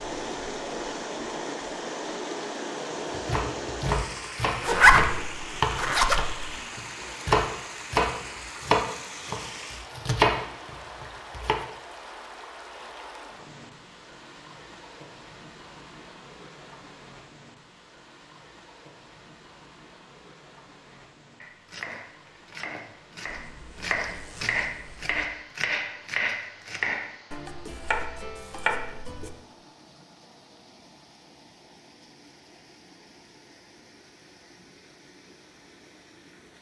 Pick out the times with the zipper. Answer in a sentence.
You can hear the zipper from 4.6 to 6.5 s and from 23.2 to 25.1 s.